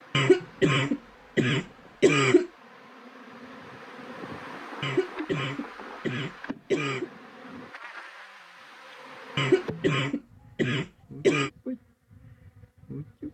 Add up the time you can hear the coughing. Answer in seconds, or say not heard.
7 s.